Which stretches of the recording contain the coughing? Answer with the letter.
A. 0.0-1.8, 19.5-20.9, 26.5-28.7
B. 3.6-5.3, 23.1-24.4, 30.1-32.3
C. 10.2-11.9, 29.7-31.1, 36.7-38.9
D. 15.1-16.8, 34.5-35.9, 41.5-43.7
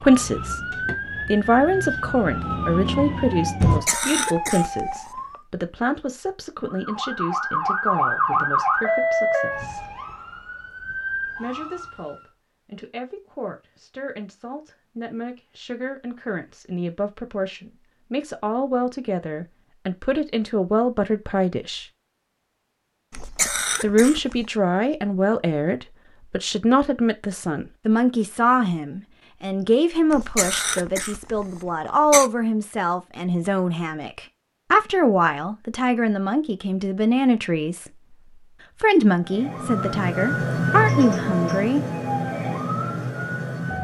B.